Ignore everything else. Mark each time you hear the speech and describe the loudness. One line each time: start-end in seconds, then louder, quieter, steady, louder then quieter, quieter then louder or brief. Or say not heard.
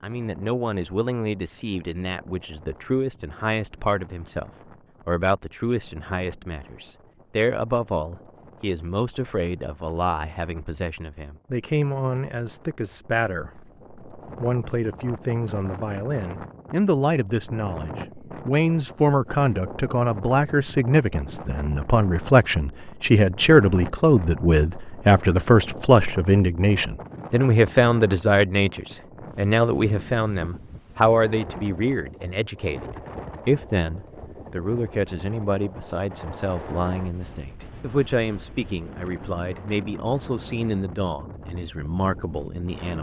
0.0-42.9 louder then quieter.